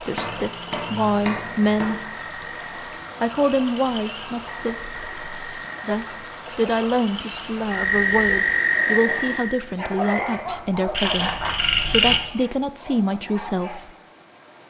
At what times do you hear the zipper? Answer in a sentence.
You can't hear the zipper here.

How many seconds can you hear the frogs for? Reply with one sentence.
The frogs can be heard for 12 seconds in total.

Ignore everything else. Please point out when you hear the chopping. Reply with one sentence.
You can hear the chopping from 0.1 to 1.9 s.